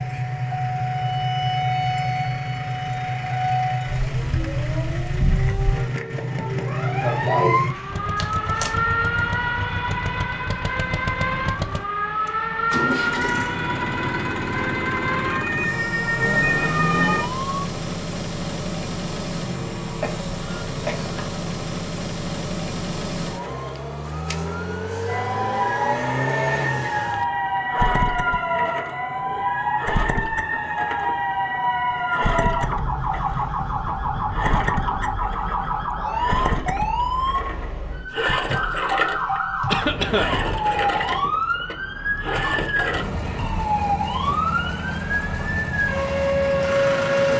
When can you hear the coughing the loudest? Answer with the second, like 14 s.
40 s.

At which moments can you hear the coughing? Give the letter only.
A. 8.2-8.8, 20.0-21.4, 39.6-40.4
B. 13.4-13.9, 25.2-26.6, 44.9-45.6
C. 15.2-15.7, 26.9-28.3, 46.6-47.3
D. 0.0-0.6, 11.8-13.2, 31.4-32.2
A.